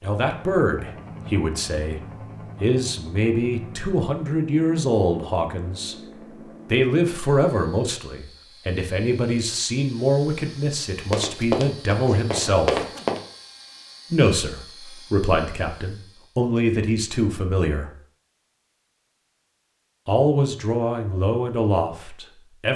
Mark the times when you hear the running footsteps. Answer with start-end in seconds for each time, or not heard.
11.1-13.2.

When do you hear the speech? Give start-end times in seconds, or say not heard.
0.0-2.0, 2.6-6.0, 6.7-12.8, 14.1-17.9, 20.1-22.7.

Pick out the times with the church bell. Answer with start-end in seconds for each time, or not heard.
not heard.